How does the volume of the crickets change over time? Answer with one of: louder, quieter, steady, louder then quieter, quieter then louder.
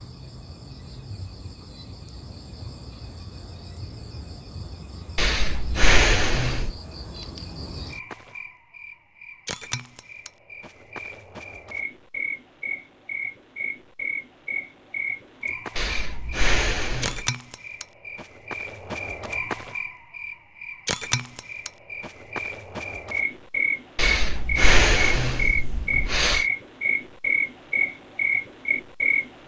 louder.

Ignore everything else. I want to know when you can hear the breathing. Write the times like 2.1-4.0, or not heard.
5.2-6.7, 15.8-17.3, 23.9-26.4.